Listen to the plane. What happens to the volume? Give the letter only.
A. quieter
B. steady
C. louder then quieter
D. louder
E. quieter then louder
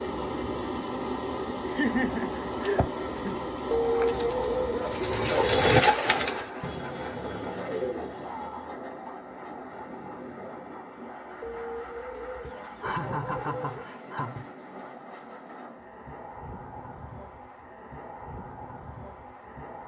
A.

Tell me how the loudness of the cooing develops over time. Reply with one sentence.
The volume of the cooing goes up, then down.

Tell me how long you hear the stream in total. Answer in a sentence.
You can't hear the stream here.